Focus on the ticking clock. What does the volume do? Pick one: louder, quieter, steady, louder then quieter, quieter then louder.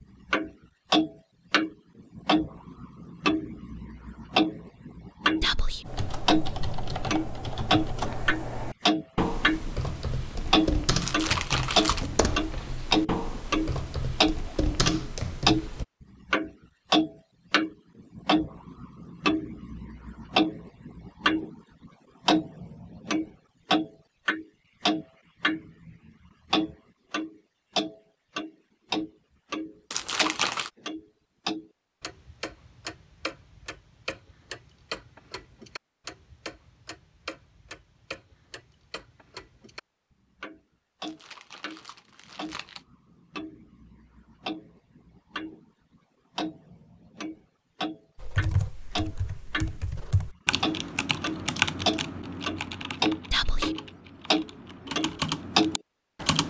quieter then louder.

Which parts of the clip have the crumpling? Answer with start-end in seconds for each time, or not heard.
11.0-12.1, 29.9-30.7, 41.0-42.8.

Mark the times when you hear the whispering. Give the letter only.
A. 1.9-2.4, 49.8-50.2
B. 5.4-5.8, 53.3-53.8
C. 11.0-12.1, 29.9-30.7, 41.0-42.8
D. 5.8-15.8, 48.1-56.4
B.